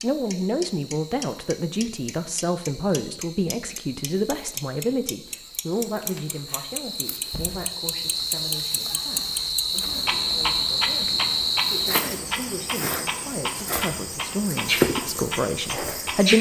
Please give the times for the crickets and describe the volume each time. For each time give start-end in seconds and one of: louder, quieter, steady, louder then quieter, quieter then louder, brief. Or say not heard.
0.0-16.3 louder.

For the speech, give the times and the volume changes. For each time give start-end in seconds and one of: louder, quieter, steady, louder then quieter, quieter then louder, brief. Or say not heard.
0.0-16.3 quieter then louder.